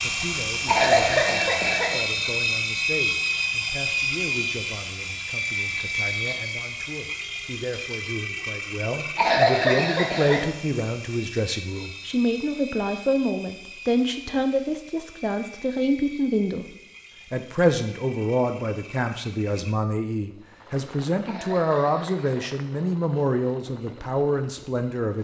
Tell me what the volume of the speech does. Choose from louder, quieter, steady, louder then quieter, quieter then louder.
louder.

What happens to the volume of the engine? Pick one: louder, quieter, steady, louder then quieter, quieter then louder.
quieter.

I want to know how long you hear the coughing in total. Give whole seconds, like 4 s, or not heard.
4 s.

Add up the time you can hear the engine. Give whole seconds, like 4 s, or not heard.
25 s.